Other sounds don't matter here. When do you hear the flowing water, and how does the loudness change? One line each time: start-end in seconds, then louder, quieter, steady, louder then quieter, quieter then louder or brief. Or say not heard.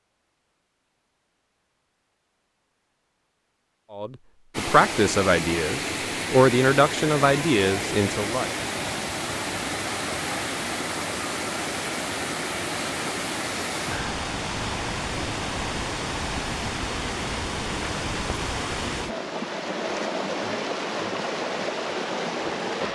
4.5-22.9 steady.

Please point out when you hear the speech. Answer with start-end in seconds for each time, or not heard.
3.9-8.5.